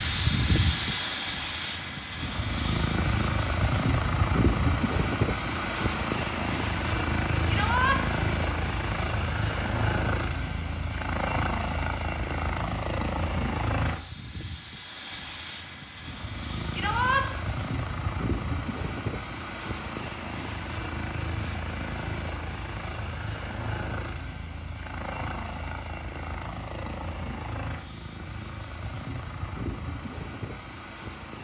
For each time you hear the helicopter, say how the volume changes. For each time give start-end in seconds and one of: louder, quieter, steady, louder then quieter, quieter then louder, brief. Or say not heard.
0.0-31.3 quieter.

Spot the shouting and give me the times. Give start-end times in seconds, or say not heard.
7.5-8.0, 16.7-17.2.